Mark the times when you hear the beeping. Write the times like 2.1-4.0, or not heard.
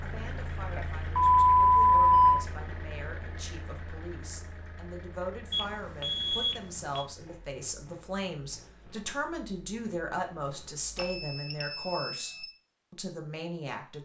0.8-2.4, 5.5-7.0, 10.9-12.4.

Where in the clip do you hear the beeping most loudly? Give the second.
2 s.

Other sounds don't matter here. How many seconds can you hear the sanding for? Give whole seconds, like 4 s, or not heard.
not heard.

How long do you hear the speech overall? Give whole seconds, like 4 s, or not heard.
14 s.